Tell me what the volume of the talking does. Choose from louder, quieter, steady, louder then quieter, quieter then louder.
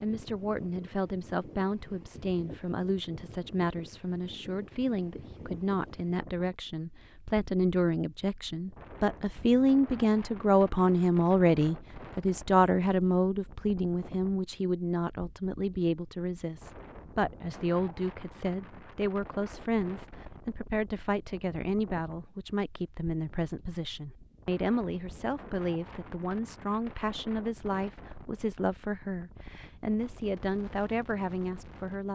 louder then quieter.